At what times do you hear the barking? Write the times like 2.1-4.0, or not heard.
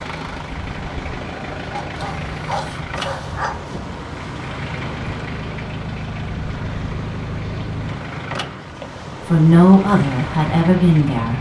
1.7-3.8.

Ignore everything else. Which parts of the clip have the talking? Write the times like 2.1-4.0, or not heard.
9.2-11.3.